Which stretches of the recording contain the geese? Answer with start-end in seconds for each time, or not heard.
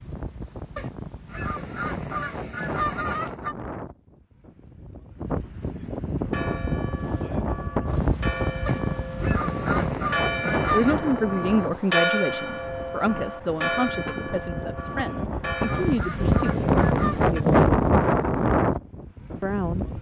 0.8-3.5, 8.7-11.0, 14.9-17.4.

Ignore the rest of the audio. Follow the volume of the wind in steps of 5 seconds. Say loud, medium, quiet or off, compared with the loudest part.
quiet, medium, medium, loud.